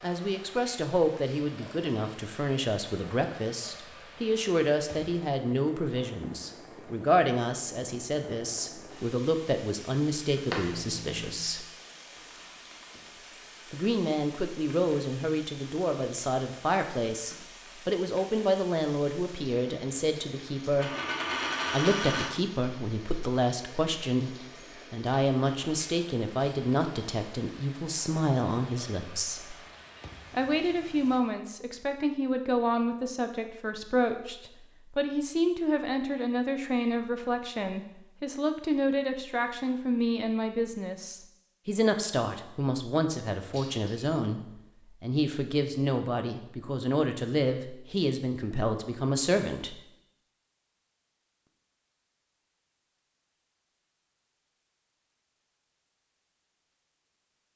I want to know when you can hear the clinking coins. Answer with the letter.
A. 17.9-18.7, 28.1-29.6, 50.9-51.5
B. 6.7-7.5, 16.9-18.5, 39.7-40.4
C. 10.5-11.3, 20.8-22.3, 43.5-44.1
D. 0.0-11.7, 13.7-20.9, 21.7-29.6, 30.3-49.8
C.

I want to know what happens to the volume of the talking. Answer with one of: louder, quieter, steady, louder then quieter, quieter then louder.
steady.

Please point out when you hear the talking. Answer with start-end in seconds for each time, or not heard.
0.0-11.7, 13.7-20.9, 21.7-29.6, 30.3-49.8.